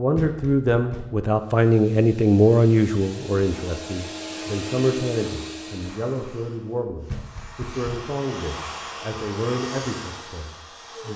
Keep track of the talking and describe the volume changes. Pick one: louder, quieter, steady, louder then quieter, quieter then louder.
quieter.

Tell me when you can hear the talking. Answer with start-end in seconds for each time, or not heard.
0.0-11.1.